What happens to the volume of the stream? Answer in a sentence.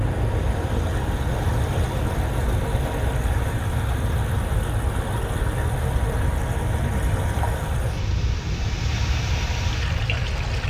The volume of the stream stays about the same.